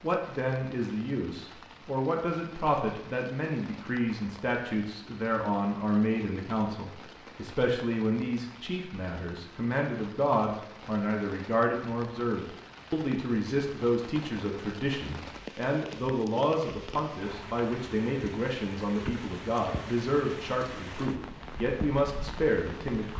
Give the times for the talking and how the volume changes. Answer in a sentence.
You can hear the talking from 0.0 to 23.1 s, at a steady volume.